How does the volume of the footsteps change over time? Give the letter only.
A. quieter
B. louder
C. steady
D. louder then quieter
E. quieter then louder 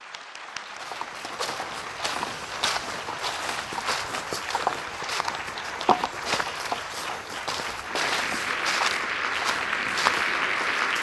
C.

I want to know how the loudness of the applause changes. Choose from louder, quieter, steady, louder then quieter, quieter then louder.
louder.